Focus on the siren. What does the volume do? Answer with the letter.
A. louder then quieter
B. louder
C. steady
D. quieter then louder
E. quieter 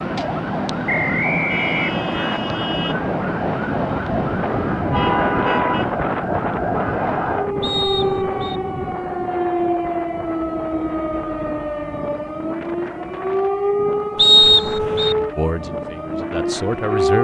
C.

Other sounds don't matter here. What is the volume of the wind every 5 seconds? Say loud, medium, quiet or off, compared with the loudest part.
loud, loud, medium, medium.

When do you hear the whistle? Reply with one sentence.
You can hear the whistle from 0.8 to 2.4 s, from 7.6 to 8.6 s and from 14.2 to 15.2 s.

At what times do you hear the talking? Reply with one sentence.
The talking can be heard from 15.3 to 17.2 s.